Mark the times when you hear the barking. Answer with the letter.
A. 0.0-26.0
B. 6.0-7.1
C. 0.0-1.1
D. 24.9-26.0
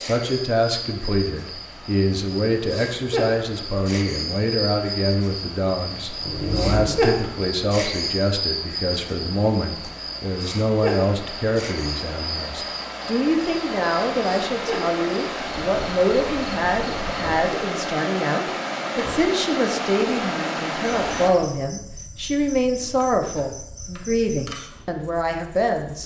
B.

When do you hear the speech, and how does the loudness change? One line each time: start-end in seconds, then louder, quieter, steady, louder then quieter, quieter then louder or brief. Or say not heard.
0.0-26.0 steady.